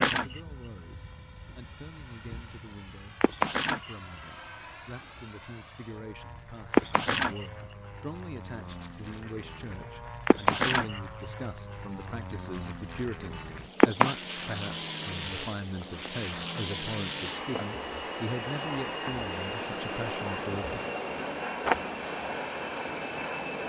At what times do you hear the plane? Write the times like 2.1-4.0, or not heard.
0.1-23.6.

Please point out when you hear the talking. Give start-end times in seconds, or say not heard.
0.1-20.9.